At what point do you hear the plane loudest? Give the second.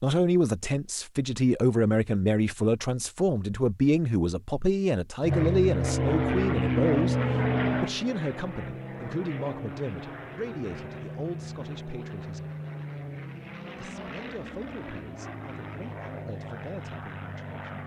7 s.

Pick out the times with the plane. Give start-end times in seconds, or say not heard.
5.2-17.8.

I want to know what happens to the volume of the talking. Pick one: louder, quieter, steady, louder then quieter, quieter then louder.
quieter.